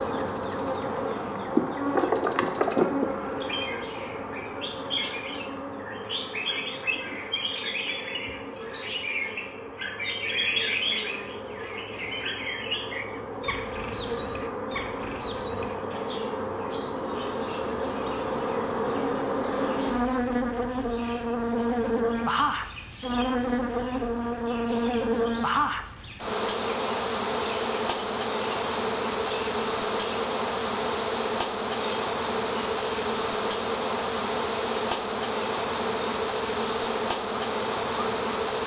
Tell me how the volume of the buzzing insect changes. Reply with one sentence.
The volume of the buzzing insect goes down, then up.